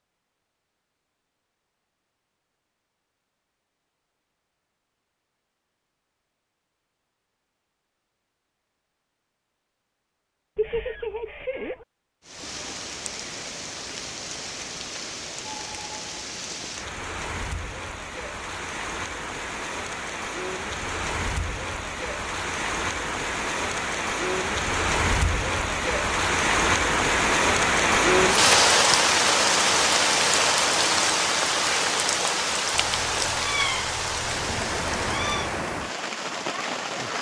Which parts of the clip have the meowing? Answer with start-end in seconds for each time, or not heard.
10.6-11.8, 32.7-35.5.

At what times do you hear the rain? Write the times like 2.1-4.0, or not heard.
12.2-37.1.